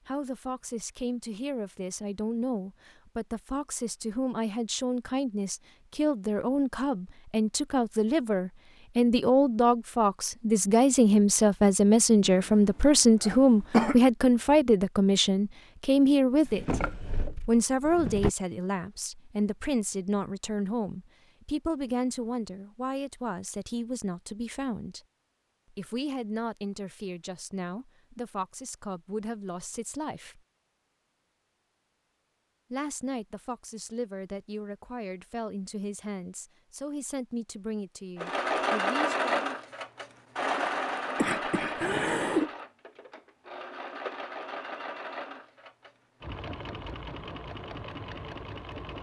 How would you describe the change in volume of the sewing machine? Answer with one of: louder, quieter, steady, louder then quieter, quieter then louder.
quieter.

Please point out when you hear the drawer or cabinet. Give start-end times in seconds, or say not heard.
16.4-18.3.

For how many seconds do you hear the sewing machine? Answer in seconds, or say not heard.
11 s.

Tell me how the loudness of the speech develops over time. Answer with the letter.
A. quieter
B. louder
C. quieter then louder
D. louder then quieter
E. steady
D.